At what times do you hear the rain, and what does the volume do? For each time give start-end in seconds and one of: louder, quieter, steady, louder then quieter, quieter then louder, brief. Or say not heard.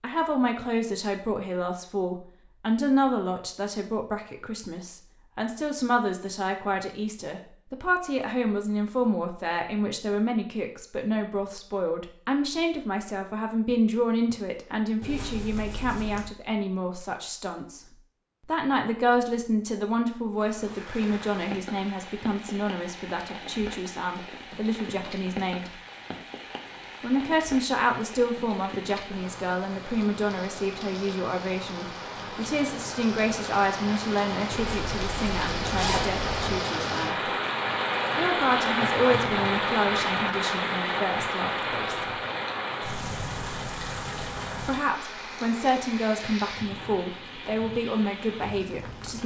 20.4-49.2 louder then quieter.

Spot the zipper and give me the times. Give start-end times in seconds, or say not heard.
15.0-16.3, 34.5-36.4.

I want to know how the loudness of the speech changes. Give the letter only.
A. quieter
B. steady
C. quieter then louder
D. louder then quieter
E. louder
B.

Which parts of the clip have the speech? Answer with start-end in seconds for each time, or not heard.
0.0-17.9, 18.4-25.8, 27.0-37.3, 38.1-42.1, 44.6-49.2.